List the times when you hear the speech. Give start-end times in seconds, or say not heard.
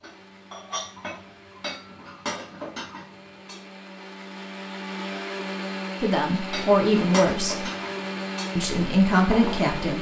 6.0-7.7, 8.6-9.9.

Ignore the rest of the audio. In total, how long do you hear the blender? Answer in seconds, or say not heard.
10 s.